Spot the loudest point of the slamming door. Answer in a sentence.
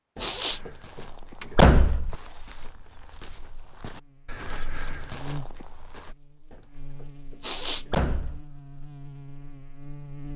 The volume of the slamming door peaks at 2 seconds.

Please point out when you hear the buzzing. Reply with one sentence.
You can hear the buzzing from 3.8 to 10.3 s.